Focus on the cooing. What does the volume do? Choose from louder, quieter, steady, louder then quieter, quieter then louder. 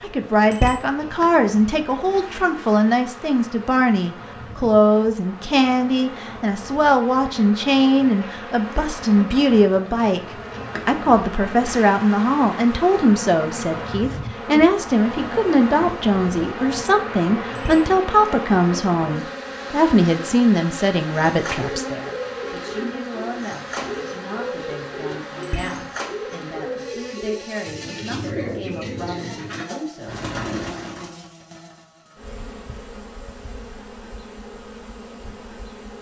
steady.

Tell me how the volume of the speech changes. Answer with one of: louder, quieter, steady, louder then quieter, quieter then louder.
quieter.